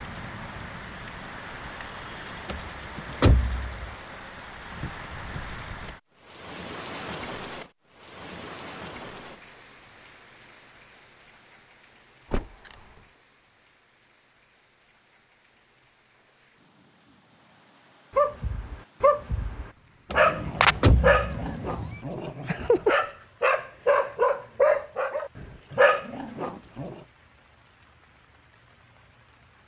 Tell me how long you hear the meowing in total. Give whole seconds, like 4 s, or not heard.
2 s.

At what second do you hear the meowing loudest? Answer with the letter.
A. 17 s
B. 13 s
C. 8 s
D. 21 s
D.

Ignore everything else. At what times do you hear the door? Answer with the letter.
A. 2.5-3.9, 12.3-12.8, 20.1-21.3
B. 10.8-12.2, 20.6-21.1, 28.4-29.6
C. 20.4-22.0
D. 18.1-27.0
A.